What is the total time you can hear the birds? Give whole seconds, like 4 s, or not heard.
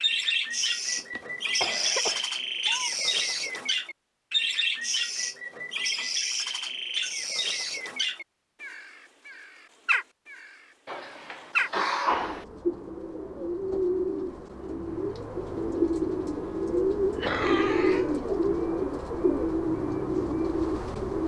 21 s.